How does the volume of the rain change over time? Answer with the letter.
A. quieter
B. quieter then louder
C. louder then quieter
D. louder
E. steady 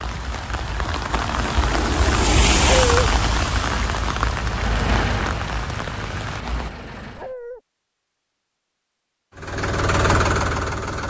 C.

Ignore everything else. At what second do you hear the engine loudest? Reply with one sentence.
The loudest moment of the engine is at 10 seconds.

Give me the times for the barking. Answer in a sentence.
You can hear the barking from 2.6 to 3.1 s and from 7.2 to 7.6 s.